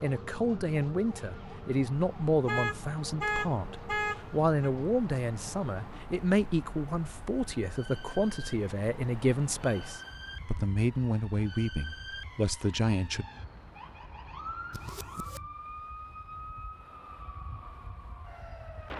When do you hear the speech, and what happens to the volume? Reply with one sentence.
The speech can be heard from 0.0 to 13.2 s, at a steady volume.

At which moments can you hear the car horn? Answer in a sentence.
The car horn can be heard from 2.5 to 4.7 s and from 14.7 to 15.4 s.